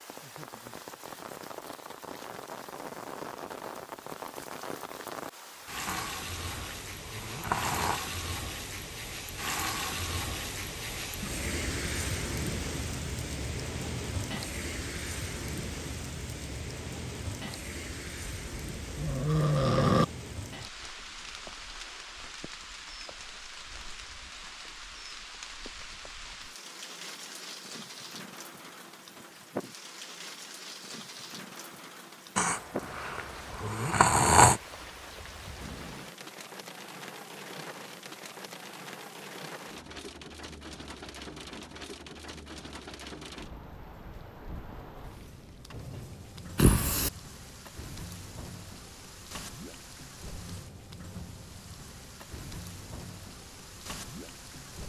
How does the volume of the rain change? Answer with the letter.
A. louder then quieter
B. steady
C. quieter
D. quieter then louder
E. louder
C.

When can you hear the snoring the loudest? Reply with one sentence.
The loudest moment of the snoring is at 34 seconds.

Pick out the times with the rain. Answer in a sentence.
You can hear the rain from 0.0 to 54.8 s.